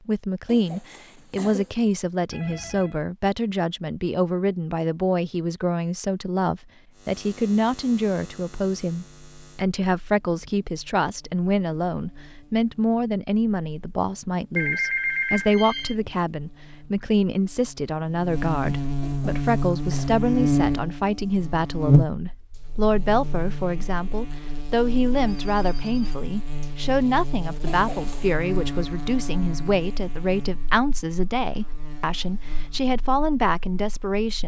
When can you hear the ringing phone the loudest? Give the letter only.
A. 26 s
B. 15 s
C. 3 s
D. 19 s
B.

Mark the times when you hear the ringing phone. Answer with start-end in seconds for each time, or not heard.
2.3-3.0, 14.6-15.9, 25.2-26.7.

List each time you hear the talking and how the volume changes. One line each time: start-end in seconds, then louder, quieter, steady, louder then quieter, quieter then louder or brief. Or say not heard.
0.1-34.4 steady.